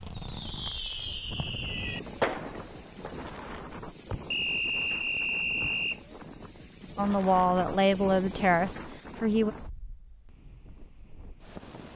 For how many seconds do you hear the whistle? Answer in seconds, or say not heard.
2 s.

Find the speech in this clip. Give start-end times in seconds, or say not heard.
7.0-9.6.